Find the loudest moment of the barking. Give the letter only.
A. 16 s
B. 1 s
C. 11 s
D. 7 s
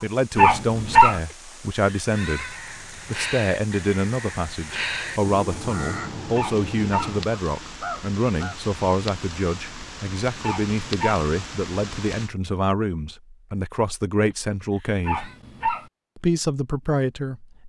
B.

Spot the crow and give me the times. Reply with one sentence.
The crow can be heard from 2.2 to 8.6 s.